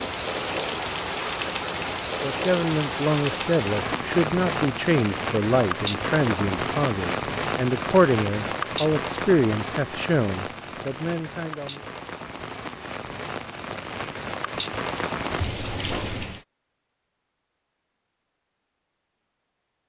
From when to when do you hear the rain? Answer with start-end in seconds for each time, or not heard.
0.0-16.4.